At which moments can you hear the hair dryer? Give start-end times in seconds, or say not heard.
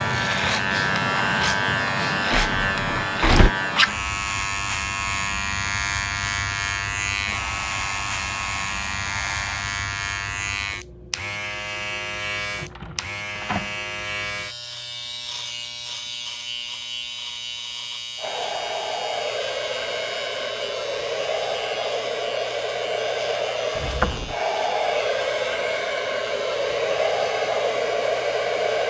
7.2-9.7, 18.1-28.8.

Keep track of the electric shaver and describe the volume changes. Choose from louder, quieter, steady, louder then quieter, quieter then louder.
quieter.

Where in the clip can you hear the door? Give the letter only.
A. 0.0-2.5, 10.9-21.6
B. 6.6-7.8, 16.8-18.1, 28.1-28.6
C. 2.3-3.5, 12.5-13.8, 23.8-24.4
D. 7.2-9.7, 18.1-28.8
C.